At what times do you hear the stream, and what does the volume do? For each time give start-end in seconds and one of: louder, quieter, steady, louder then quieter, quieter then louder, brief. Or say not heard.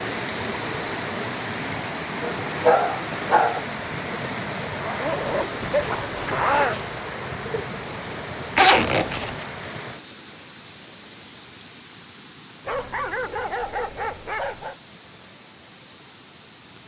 0.0-16.8 quieter.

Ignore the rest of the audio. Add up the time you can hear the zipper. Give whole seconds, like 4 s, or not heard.
3 s.